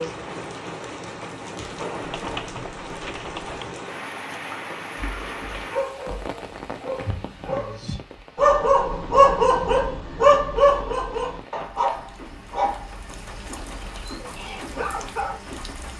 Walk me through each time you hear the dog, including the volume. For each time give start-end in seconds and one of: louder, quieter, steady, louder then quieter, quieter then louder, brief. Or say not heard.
5.0-15.4 louder then quieter.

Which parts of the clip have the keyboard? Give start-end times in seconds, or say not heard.
2.0-3.6.